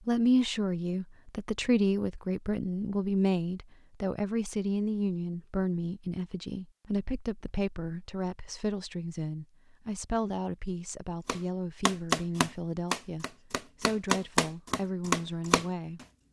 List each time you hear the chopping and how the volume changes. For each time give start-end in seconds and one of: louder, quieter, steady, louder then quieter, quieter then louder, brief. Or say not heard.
11.2-16.1 quieter then louder.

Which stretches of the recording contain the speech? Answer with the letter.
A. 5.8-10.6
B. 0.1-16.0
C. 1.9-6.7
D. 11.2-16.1
B.